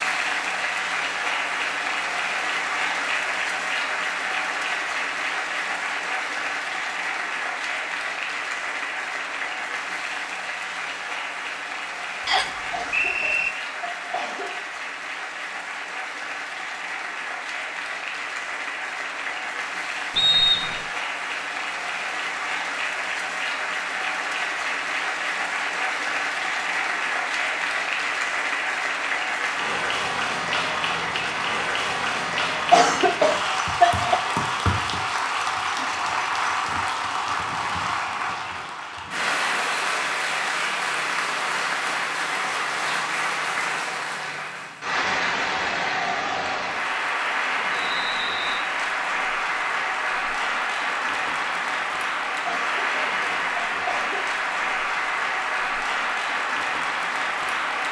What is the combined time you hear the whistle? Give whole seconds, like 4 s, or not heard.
3 s.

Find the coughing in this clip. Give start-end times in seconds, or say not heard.
12.7-14.6, 32.7-34.2, 52.5-54.3.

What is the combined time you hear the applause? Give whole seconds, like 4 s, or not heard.
58 s.